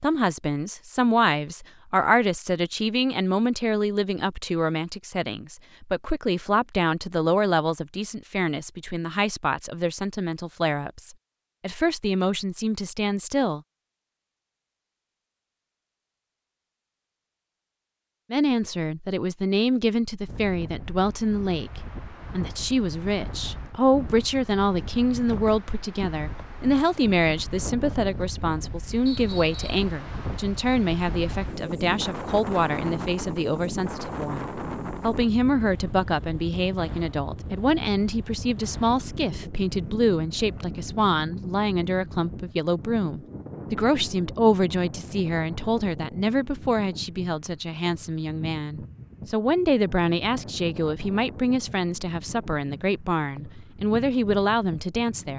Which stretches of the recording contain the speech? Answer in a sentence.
The speech can be heard from 0.0 to 13.6 s and from 18.3 to 55.3 s.